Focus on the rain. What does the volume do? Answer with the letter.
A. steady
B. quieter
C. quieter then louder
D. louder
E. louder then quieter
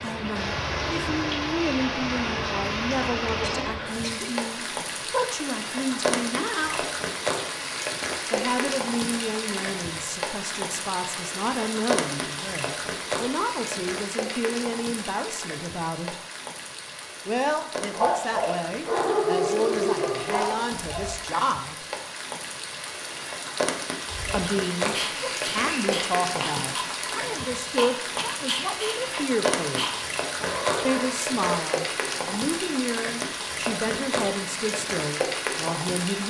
C.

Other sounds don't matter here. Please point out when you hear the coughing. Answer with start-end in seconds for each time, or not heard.
3.2-4.3.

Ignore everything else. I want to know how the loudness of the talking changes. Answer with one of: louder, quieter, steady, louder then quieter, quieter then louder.
steady.